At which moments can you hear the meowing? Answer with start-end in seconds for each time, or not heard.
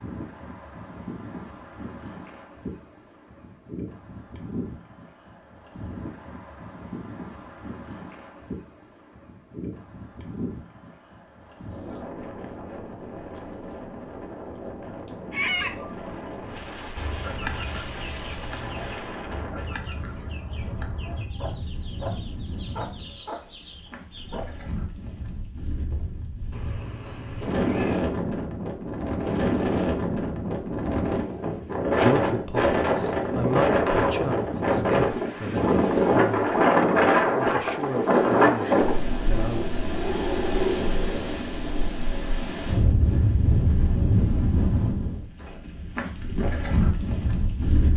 26.5-28.1.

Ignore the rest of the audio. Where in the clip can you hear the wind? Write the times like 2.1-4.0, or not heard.
0.0-47.9.